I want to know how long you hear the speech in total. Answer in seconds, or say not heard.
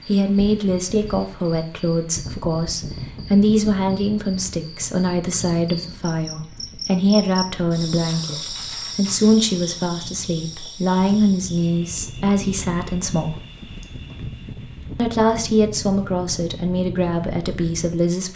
17 s.